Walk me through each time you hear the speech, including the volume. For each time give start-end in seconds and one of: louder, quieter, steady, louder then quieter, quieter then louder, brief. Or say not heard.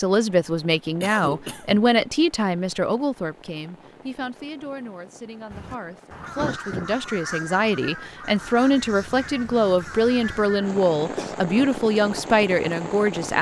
0.0-13.3 quieter then louder.